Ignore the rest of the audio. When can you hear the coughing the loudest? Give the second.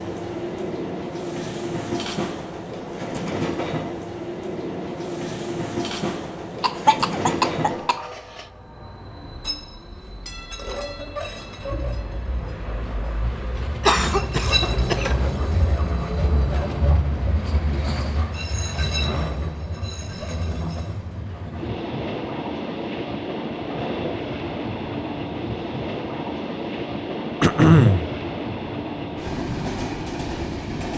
28 s.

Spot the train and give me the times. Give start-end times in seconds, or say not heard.
0.0-30.9.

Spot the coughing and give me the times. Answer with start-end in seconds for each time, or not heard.
6.6-8.4, 13.8-15.3, 27.4-28.1.